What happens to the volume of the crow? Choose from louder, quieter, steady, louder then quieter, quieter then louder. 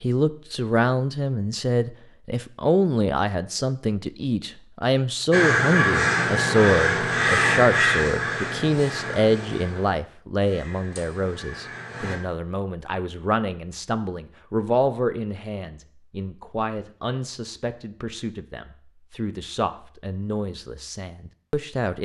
quieter.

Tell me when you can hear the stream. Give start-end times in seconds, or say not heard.
not heard.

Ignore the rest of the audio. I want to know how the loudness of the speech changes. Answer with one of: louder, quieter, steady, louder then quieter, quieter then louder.
quieter.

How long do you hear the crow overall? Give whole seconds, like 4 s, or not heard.
7 s.